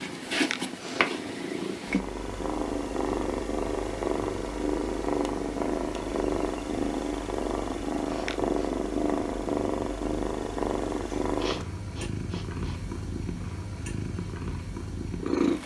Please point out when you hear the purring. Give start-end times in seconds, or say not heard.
0.0-15.6.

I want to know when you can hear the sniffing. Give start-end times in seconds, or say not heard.
0.3-1.1, 8.1-8.7, 11.3-12.8.